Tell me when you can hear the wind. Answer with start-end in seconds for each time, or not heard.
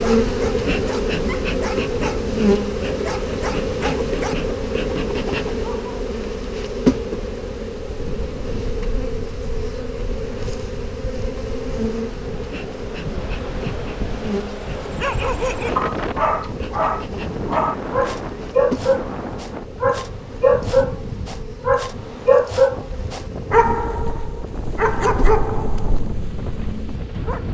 7.9-27.4.